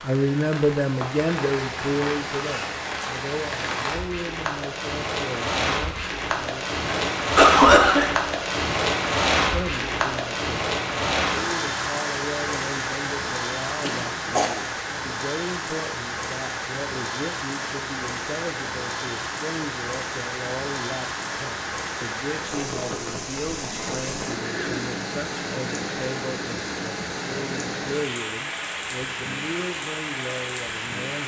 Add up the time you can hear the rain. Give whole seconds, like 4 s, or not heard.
31 s.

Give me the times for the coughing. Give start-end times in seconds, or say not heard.
6.8-8.1, 13.8-14.5, 23.7-24.9.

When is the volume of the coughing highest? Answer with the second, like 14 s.
8 s.